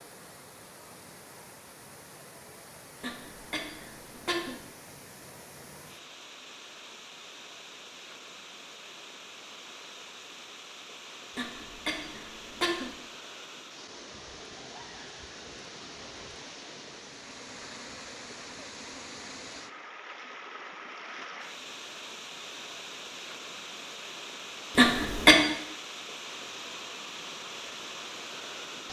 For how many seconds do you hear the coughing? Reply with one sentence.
You can hear the coughing for 4 seconds altogether.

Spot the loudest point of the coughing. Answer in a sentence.
The loudest moment of the coughing is at 25 seconds.